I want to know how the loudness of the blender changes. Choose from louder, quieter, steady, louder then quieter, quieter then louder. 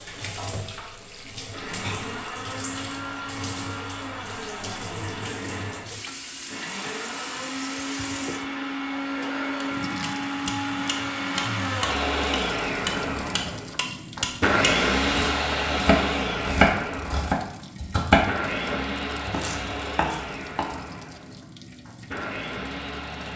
louder then quieter.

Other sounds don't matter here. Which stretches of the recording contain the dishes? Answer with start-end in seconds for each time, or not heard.
not heard.